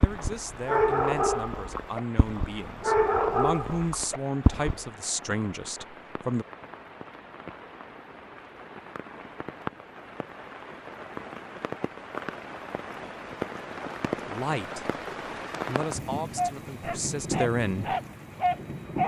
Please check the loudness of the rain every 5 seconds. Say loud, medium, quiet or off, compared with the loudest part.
medium, medium, loud, loud.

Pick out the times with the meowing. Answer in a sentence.
The meowing can't be heard in this clip.